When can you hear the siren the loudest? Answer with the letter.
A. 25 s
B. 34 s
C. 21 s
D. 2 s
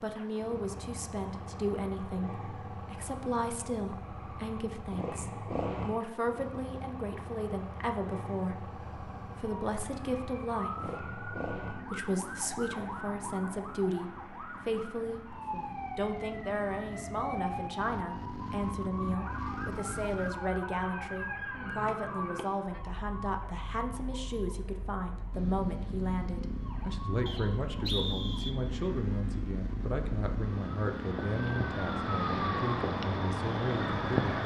B.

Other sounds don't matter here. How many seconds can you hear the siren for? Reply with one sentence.
The siren can be heard for 25 seconds in total.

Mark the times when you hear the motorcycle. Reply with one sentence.
You can hear the motorcycle from 0.0 to 20.4 s and from 25.3 to 34.4 s.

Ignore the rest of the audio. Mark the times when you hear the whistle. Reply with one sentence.
The whistle can be heard from 27.2 to 28.6 s.